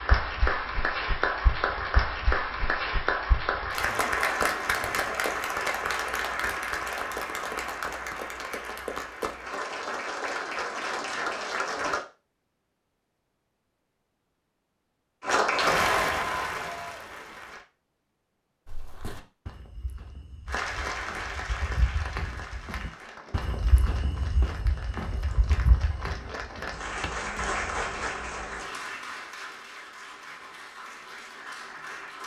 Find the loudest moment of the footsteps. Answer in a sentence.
The volume of the footsteps peaks at 26 seconds.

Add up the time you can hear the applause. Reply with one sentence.
You can hear the applause for 26 seconds altogether.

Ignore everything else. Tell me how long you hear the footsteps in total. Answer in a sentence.
The footsteps can be heard for 9 seconds in total.